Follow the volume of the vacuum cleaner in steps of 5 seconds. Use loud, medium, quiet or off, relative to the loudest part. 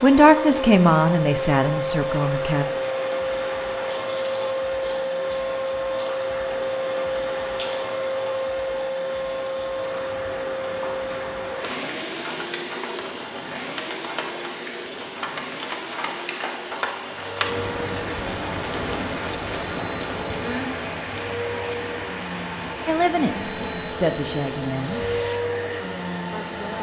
loud, loud, medium, medium, medium, loud.